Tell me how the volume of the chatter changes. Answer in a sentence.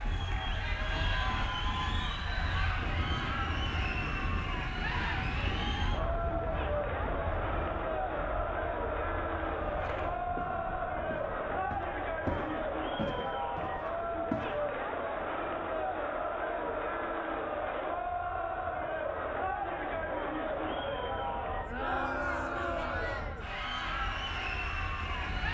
The loudness of the chatter stays about the same.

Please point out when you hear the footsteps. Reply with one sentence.
You can hear the footsteps from 9.8 to 14.5 s.